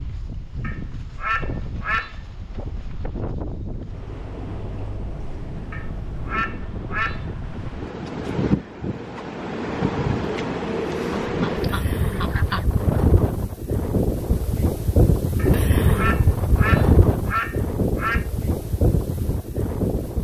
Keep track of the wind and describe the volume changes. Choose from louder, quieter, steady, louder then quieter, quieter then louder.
louder.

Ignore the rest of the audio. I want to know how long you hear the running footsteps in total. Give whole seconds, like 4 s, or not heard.
not heard.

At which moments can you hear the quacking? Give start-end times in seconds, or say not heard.
0.6-2.1, 5.7-7.2, 11.1-12.7, 15.3-18.2.